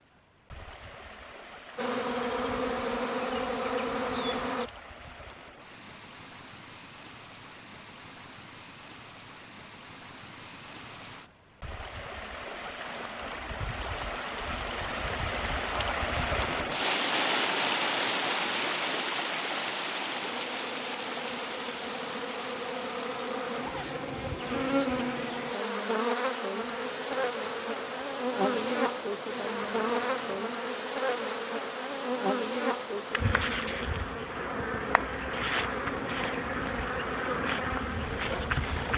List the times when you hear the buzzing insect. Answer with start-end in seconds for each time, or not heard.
1.8-4.7, 20.1-38.9.